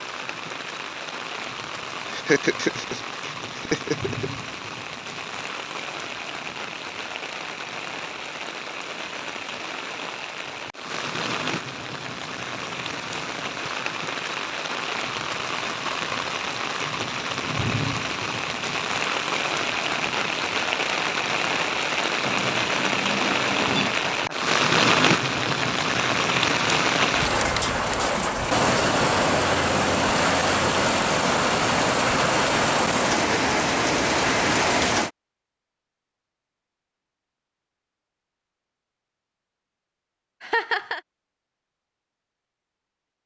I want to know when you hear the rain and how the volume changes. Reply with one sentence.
You can hear the rain from 0.0 to 35.1 s, getting louder.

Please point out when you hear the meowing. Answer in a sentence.
You can hear the meowing from 22.2 to 23.9 s.